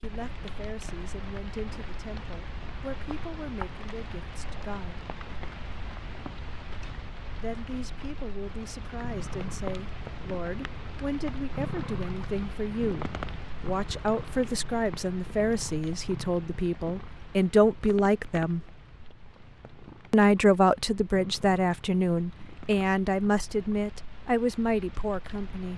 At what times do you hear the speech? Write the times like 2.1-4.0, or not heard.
0.0-5.0, 7.3-18.6, 20.1-25.7.